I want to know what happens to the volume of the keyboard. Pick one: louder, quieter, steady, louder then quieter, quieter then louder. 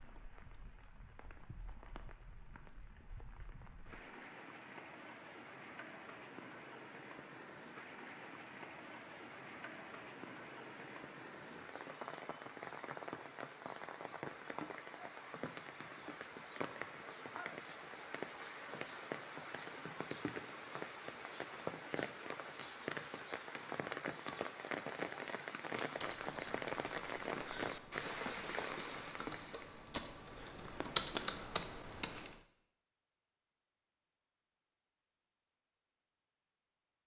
louder.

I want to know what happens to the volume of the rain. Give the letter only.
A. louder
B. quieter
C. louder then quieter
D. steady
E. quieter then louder
A.